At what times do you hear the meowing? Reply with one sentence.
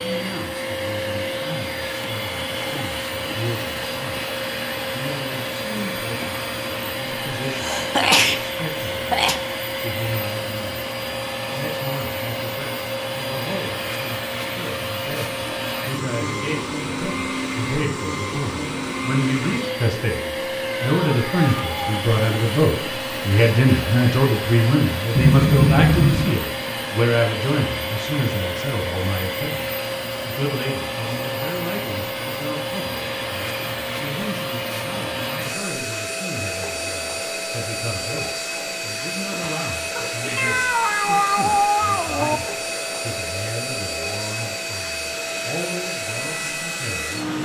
You can hear the meowing from 20.6 to 22.1 s and from 40.4 to 42.4 s.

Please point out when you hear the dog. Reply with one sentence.
The dog can't be heard in this clip.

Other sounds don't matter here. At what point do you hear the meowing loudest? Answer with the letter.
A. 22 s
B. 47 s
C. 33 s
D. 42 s
D.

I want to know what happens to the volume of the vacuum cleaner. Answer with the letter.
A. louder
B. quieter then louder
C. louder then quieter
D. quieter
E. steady
E.